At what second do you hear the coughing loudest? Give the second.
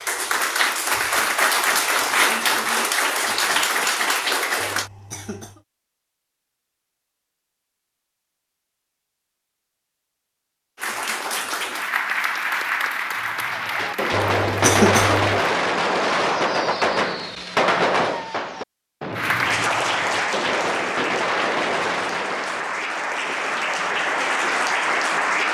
15 s.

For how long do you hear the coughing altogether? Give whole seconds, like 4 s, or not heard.
2 s.